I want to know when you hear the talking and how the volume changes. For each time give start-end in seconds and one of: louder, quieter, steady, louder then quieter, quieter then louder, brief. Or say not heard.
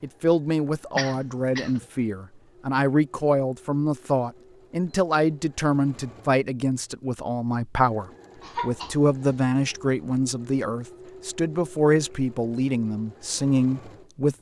0.0-14.3 steady.